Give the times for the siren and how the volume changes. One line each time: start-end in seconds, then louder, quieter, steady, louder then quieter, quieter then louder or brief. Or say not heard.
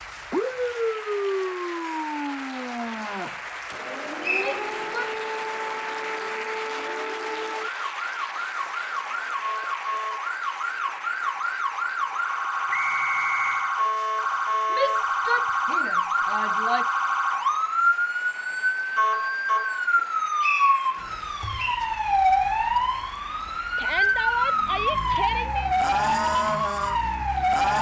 0.3-27.7 louder.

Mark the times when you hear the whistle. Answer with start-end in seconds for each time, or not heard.
4.2-5.0, 12.7-13.8, 20.4-21.8.